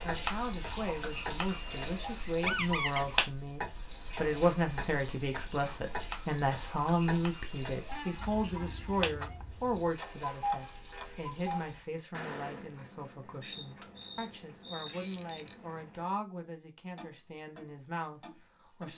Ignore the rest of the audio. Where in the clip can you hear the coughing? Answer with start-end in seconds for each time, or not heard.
not heard.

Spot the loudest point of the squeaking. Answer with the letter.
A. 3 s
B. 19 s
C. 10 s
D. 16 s
A.